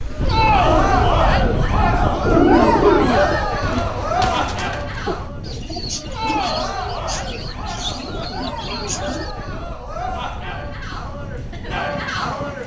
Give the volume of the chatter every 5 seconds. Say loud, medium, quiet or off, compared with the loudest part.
loud, medium, medium.